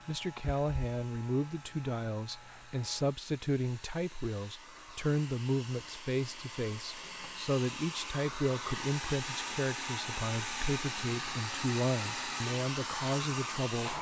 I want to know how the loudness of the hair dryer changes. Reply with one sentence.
The volume of the hair dryer goes up.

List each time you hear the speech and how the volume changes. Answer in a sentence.
You can hear the speech from 0.1 to 13.9 s, at a steady volume.